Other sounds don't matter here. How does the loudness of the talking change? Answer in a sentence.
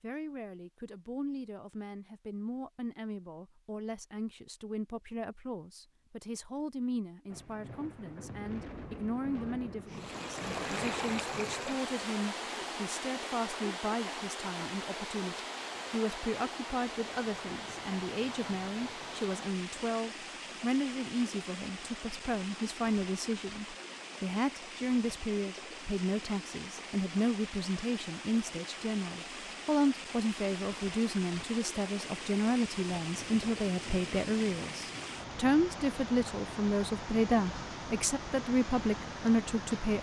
The volume of the talking goes up.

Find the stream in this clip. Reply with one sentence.
The stream can be heard from 9.8 to 39.9 s.